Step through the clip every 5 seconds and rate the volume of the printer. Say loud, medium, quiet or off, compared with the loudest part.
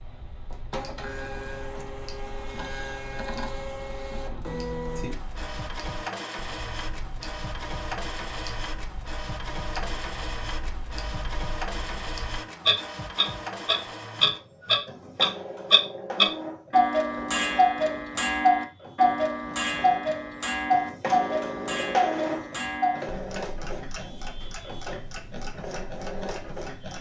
loud, loud, loud, medium, loud, loud.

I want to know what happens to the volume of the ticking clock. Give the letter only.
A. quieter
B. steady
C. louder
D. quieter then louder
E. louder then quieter
E.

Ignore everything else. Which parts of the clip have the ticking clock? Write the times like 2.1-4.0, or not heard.
0.0-26.9.